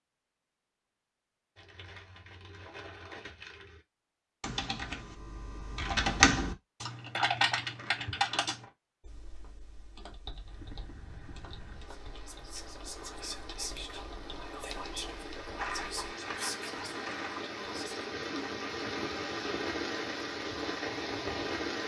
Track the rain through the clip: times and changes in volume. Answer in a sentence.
You can hear the rain from 10.3 to 21.8 s, getting louder.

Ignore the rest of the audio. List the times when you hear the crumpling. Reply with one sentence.
The crumpling can be heard from 1.6 to 3.8 s, from 7.3 to 8.7 s and from 15.6 to 17.4 s.